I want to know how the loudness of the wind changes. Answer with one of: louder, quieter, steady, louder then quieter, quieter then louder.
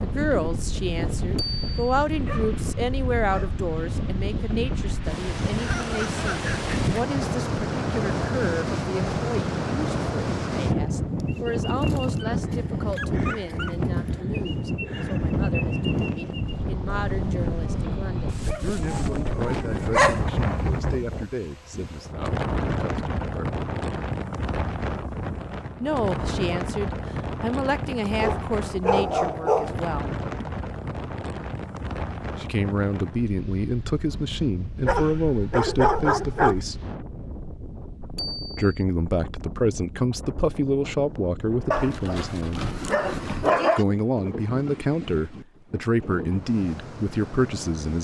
quieter.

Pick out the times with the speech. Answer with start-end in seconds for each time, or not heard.
0.0-23.6, 25.8-30.1, 32.4-36.8, 38.5-42.6, 43.8-47.9.